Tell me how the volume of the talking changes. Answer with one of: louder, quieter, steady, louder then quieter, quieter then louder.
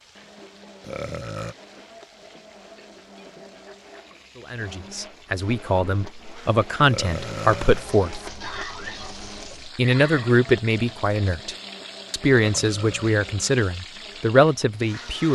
louder.